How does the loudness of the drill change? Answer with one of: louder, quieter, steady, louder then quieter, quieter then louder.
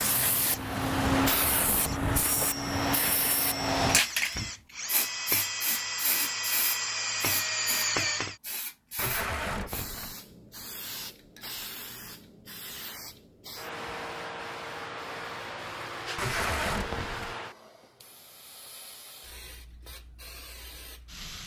louder.